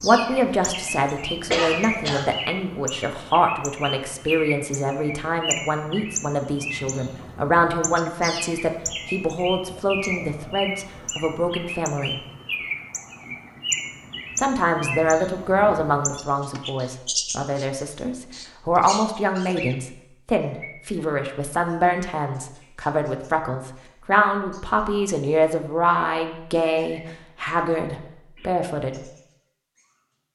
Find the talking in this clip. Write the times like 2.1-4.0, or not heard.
0.0-12.2, 14.3-29.0.